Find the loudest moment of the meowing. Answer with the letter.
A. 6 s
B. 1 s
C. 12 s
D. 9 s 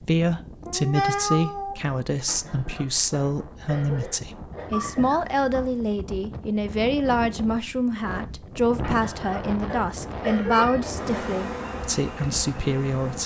B.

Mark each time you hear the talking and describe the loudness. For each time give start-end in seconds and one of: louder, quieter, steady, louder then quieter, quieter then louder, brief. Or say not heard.
0.1-13.2 steady.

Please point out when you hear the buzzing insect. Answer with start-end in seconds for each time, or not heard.
10.8-13.2.